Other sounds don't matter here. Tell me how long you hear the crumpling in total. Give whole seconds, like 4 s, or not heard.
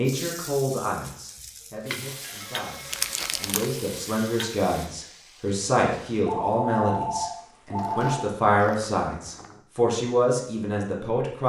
3 s.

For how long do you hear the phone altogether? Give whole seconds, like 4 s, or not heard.
3 s.